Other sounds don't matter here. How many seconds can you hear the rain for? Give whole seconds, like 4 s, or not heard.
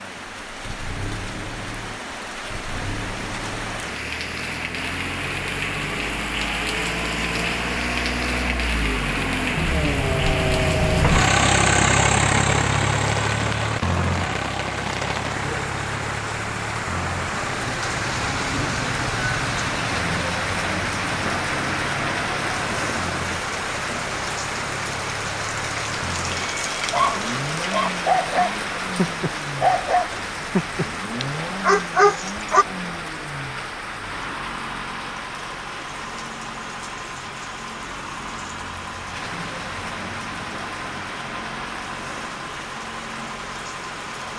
44 s.